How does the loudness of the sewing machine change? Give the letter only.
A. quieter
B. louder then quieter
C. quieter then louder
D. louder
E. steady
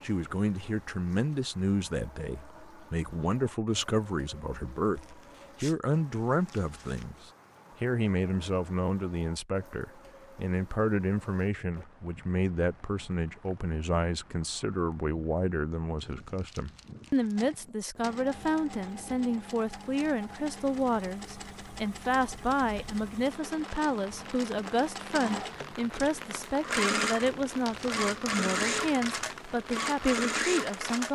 D.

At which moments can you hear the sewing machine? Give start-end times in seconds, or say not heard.
17.4-31.0.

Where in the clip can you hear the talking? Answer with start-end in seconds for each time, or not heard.
0.0-31.0.